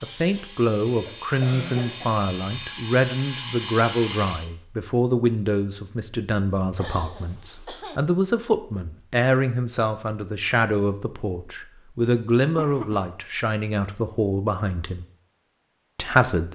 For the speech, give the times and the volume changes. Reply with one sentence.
You can hear the speech from 0.0 to 15.1 s, at a steady volume; and briefly from 15.9 to 16.5 s.